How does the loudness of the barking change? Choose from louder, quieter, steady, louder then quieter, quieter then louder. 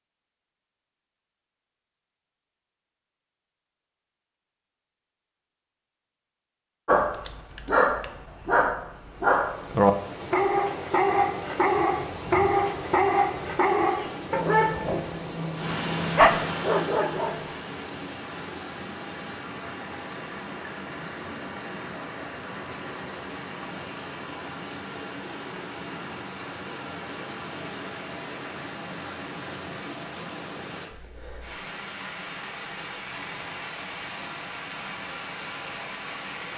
steady.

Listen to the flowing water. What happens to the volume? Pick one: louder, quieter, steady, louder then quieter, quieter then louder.
steady.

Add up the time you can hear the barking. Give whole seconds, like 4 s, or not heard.
11 s.